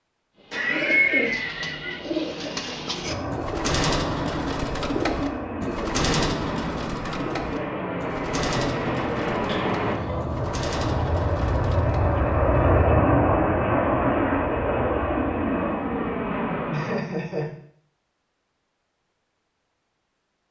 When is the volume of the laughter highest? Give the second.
1 s.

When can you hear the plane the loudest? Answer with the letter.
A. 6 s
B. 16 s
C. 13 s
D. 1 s
C.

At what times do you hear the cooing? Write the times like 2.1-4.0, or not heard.
0.4-12.2.